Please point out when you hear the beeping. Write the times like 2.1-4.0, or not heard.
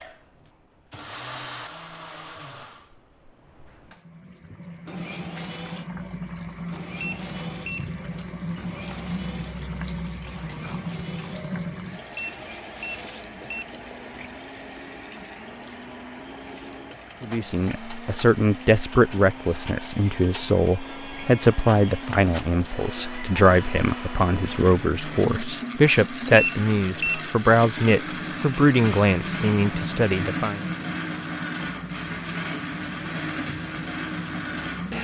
7.0-7.9, 12.2-13.7, 26.4-27.3.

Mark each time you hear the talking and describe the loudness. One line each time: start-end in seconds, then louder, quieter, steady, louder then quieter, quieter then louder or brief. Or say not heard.
17.2-30.6 steady.